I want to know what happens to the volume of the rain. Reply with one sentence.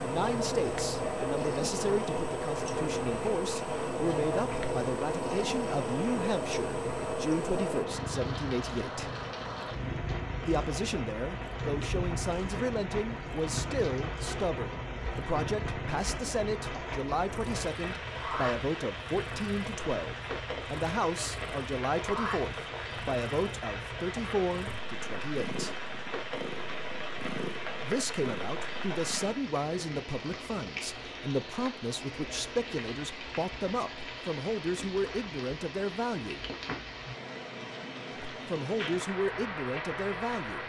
The volume of the rain goes down.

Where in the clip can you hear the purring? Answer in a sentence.
You can hear the purring from 0.0 to 29.4 s.